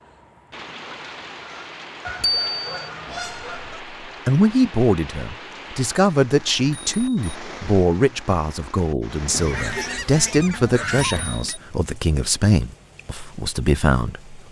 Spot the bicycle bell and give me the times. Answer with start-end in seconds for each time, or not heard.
2.2-2.9, 6.7-7.3, 10.9-11.6.